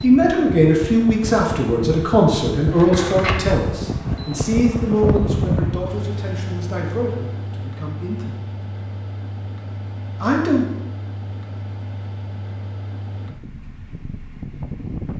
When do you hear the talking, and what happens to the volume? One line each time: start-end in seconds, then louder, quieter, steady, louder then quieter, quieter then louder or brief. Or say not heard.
0.0-8.4 quieter
10.2-10.7 brief.